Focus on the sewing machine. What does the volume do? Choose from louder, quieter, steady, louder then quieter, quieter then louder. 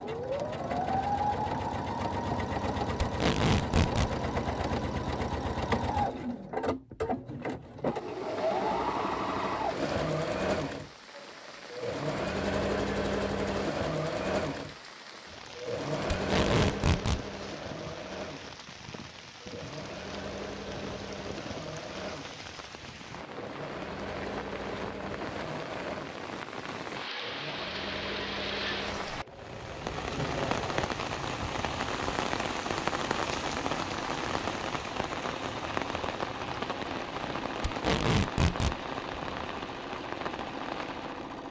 quieter.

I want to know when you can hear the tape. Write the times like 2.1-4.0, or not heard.
3.0-4.1, 16.1-17.2, 37.6-38.8.